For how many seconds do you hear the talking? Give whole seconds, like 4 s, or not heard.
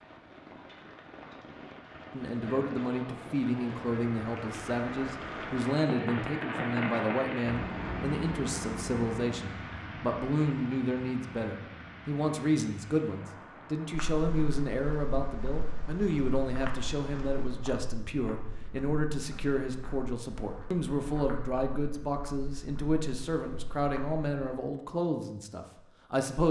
24 s.